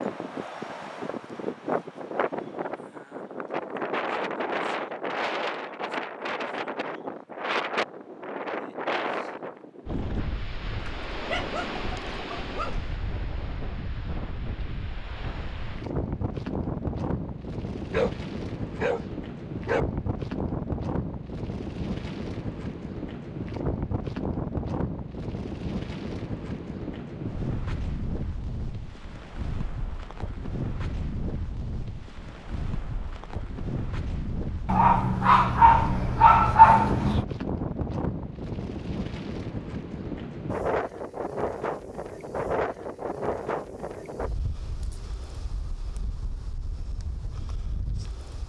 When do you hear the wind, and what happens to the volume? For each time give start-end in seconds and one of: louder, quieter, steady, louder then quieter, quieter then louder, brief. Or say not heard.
0.0-48.4 steady.